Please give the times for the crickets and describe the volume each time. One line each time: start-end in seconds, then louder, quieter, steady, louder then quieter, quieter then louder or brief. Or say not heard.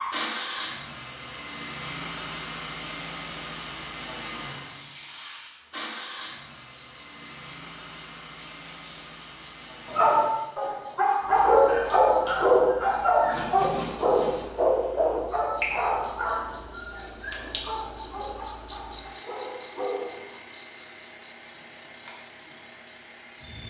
0.0-23.6 louder.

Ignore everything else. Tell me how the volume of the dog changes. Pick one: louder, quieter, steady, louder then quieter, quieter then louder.
quieter.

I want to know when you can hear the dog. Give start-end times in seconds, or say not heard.
9.9-20.4.